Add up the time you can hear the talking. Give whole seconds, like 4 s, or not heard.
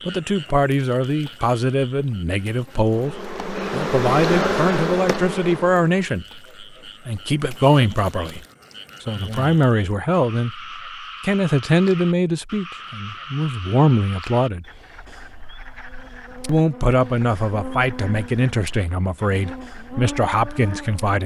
19 s.